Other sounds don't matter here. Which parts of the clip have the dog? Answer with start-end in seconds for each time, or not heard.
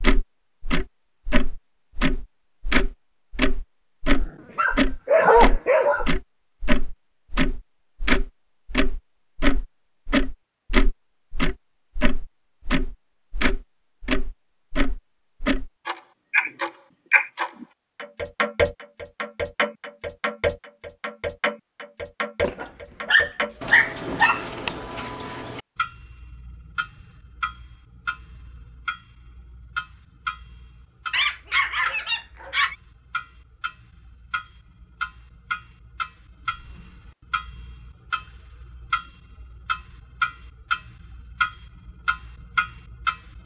4.2-6.0, 22.4-25.0, 31.1-32.8.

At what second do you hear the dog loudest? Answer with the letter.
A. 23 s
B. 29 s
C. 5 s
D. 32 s
C.